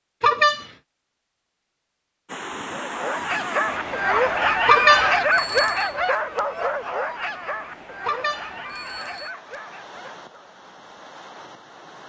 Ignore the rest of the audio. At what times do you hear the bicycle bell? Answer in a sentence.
The bicycle bell can be heard from 0.2 to 0.7 s, from 4.7 to 5.9 s and from 8.1 to 9.3 s.